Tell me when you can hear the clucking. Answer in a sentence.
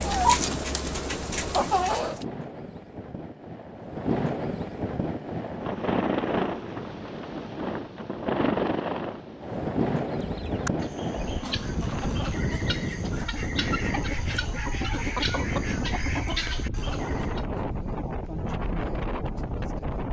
You can hear the clucking from 0.0 to 2.2 s and from 10.2 to 17.4 s.